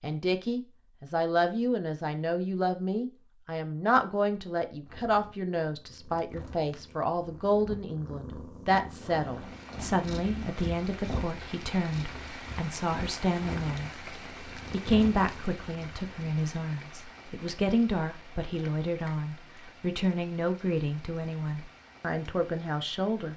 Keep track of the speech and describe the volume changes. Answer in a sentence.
The volume of the speech stays about the same.